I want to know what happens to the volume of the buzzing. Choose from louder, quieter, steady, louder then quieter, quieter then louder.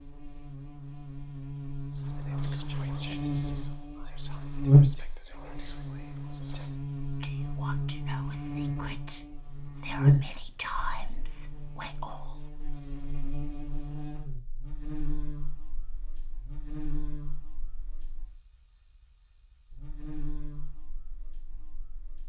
louder then quieter.